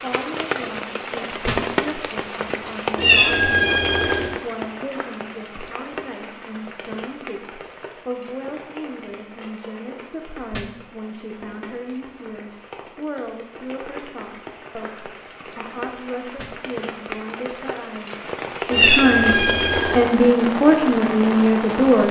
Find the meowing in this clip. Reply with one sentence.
The meowing can be heard from 3.0 to 4.3 s and from 18.7 to 20.0 s.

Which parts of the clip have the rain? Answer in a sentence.
You can hear the rain from 0.0 to 22.0 s.